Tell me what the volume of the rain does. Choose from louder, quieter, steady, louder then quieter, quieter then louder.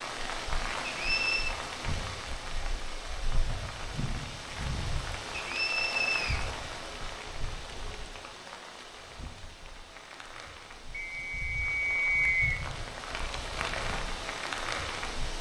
quieter then louder.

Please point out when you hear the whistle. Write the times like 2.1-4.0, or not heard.
0.8-1.6, 5.3-6.5, 10.9-12.6.